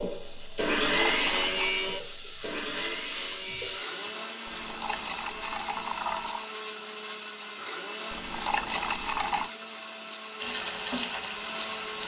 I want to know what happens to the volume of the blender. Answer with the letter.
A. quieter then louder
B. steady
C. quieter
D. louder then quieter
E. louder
C.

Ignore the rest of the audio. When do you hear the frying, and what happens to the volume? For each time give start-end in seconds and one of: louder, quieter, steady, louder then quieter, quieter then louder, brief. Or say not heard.
0.0-4.2 louder
10.4-12.0 brief.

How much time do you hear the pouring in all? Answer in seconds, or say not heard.
4 s.